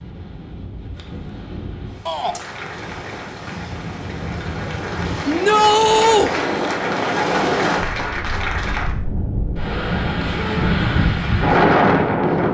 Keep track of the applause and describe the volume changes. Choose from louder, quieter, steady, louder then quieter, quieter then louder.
louder.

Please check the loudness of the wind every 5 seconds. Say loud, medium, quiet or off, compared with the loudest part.
quiet, medium, loud.